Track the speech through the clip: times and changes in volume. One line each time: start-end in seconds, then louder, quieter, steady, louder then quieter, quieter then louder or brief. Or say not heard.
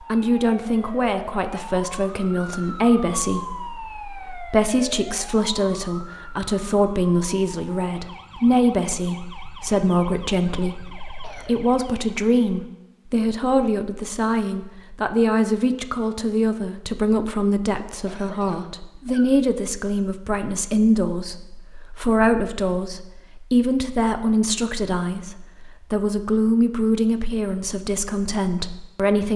0.0-29.3 steady.